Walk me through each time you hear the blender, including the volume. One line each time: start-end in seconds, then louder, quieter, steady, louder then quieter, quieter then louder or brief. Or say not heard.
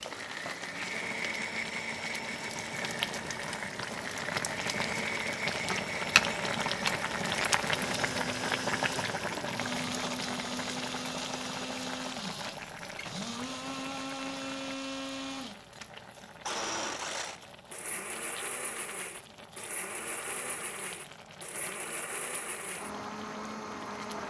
0.0-24.2 steady.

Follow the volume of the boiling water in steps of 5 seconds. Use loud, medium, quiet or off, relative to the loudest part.
medium, loud, medium, quiet, quiet.